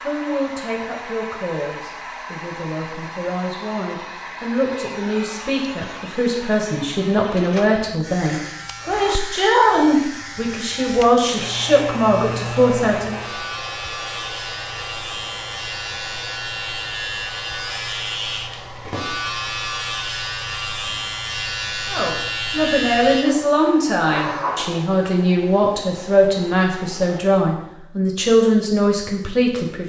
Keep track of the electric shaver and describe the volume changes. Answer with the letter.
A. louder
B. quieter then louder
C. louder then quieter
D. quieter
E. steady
A.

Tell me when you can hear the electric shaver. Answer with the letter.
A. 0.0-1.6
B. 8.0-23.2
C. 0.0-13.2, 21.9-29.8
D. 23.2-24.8
B.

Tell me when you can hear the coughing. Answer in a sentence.
You can hear the coughing from 23.2 to 24.8 s.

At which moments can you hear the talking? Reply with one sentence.
The talking can be heard from 0.0 to 13.2 s and from 21.9 to 29.8 s.